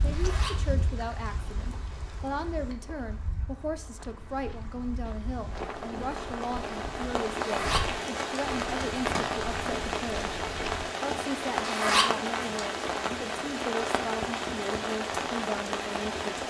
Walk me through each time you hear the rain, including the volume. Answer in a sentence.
The rain can be heard from 0.0 to 16.4 s, getting louder.